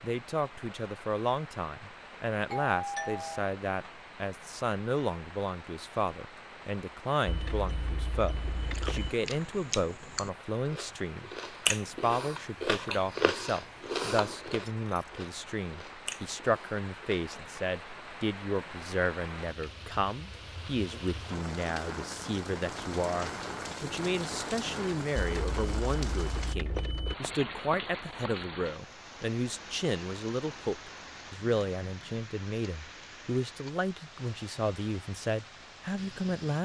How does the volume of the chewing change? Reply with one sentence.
The volume of the chewing goes up, then down.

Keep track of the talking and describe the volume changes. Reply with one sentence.
The volume of the talking stays about the same.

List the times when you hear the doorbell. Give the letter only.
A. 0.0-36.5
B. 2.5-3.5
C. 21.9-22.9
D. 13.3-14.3
B.